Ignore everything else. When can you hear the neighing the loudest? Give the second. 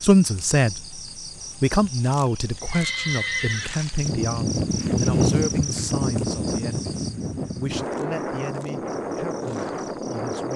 3 s.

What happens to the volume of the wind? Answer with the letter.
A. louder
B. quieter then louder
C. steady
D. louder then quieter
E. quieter
E.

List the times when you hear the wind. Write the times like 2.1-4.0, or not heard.
4.0-10.5.